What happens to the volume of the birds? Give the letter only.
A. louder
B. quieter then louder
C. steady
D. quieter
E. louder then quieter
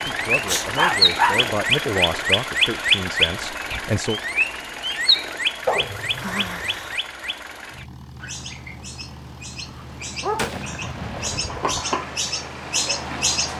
B.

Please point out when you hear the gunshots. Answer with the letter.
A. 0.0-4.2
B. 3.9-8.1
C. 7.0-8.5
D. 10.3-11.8
D.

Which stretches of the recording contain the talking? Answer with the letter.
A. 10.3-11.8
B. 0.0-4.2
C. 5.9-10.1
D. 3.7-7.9
B.